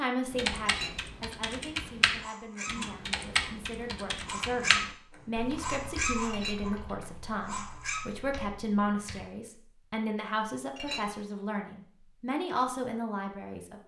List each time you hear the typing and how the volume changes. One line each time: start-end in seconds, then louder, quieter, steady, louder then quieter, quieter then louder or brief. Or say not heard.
0.3-9.2 quieter.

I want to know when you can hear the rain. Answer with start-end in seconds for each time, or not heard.
not heard.